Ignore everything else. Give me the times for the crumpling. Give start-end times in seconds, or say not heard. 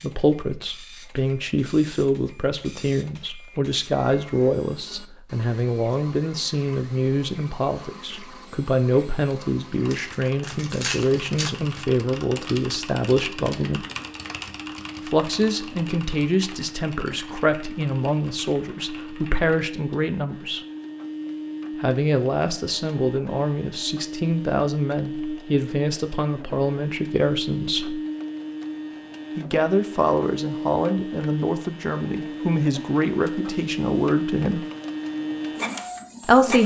9.9-11.6.